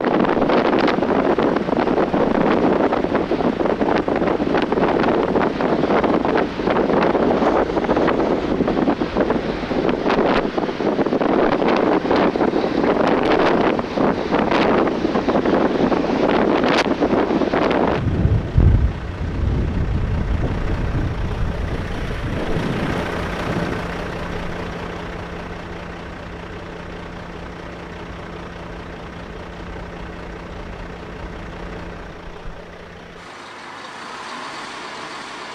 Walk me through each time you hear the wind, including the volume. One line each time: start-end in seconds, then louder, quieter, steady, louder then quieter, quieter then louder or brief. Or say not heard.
0.0-23.9 quieter.